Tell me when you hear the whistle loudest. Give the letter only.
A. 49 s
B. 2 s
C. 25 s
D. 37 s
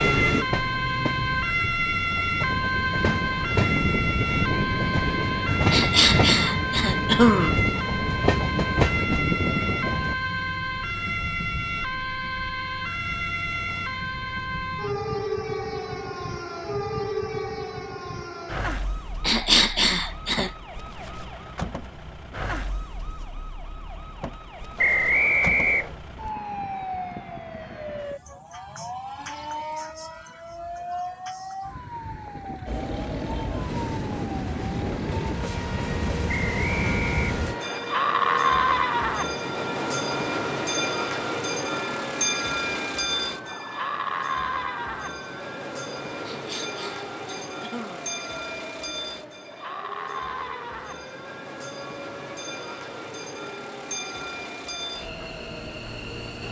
C.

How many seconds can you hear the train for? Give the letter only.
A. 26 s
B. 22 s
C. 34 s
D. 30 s
C.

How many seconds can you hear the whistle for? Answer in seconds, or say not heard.
3 s.